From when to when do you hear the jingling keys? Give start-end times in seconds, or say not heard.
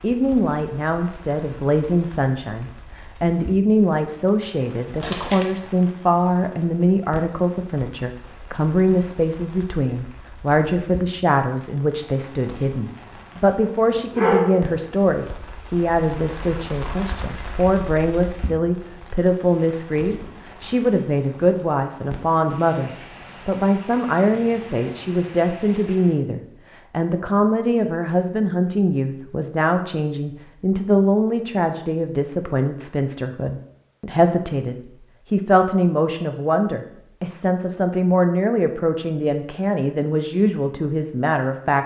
4.8-5.5.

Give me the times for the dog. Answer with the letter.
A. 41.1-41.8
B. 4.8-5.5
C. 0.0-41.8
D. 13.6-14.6
D.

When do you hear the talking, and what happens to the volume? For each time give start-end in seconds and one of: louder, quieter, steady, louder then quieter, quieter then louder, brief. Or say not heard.
0.0-41.8 steady.